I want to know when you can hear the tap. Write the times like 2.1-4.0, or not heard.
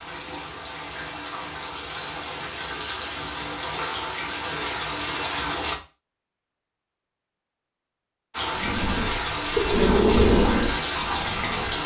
0.0-5.8, 8.3-11.8.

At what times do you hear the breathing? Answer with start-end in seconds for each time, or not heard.
8.6-11.8.